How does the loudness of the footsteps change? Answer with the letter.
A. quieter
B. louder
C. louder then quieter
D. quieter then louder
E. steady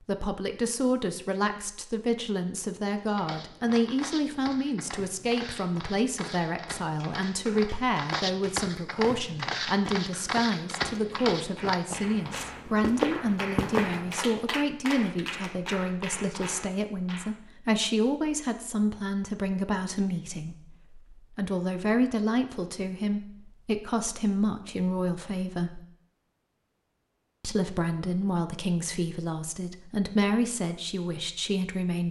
B.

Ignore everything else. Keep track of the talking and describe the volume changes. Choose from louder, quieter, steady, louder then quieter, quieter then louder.
steady.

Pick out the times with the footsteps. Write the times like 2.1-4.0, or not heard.
3.0-14.2.